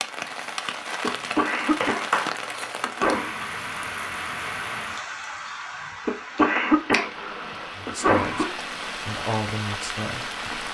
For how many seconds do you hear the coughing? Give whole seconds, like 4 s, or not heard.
5 s.